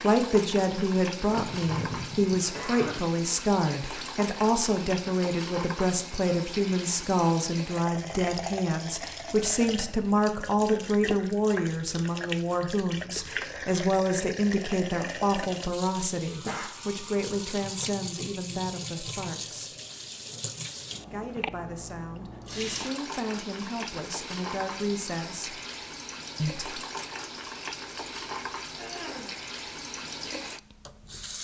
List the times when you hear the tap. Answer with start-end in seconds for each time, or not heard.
0.0-31.3.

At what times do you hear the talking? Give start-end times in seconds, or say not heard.
0.0-19.7, 21.1-25.6, 26.4-26.8.